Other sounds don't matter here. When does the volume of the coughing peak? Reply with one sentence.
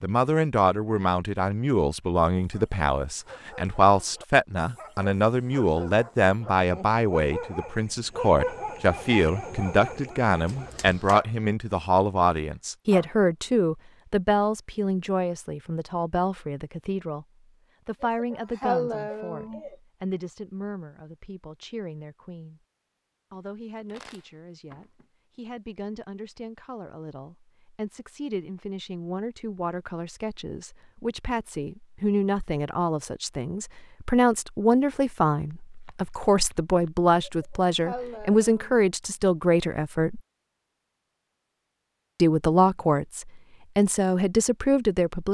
The volume of the coughing peaks at 19 seconds.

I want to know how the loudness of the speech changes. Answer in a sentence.
The loudness of the speech goes down, then up.